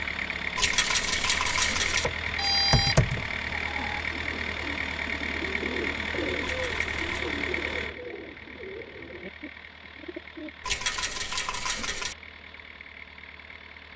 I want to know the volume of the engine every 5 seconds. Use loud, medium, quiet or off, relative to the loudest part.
loud, loud, quiet.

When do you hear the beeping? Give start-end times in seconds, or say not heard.
2.0-3.3.